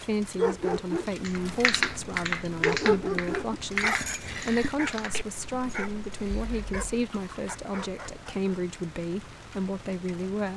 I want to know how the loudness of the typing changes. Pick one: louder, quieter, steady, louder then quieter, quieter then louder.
quieter.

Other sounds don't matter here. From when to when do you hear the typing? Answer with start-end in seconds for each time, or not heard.
1.2-7.5.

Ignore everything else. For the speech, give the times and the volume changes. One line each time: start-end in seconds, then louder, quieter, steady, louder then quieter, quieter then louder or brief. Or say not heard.
0.0-10.5 steady.